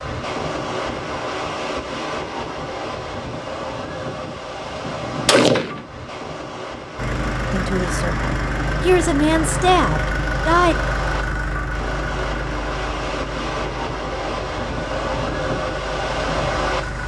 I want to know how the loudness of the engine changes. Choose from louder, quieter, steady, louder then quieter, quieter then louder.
quieter.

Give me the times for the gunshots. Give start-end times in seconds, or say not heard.
4.0-5.8.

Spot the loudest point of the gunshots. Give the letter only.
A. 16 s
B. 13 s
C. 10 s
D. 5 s
D.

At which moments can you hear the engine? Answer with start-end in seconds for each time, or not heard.
7.0-17.0.